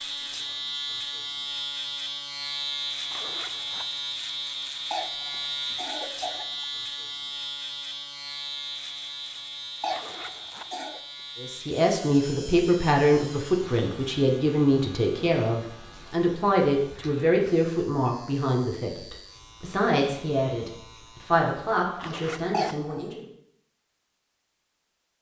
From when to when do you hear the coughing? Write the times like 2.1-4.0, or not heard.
4.9-6.7, 9.8-11.0, 22.5-23.1.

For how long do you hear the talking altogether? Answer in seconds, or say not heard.
12 s.